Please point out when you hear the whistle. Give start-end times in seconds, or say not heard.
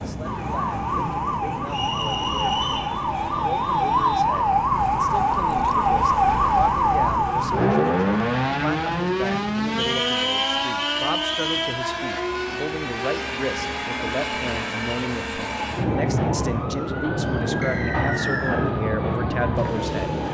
1.6-2.9, 9.8-11.8, 17.6-18.6.